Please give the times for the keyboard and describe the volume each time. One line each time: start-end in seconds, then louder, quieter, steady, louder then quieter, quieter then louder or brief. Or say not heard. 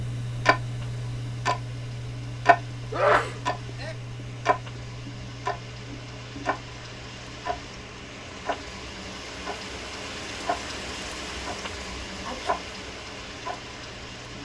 not heard.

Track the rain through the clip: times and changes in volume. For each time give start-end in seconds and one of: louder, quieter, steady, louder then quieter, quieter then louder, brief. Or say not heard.
0.0-14.4 louder.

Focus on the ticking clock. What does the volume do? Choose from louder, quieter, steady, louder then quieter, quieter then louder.
quieter.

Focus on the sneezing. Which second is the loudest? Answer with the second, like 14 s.
3 s.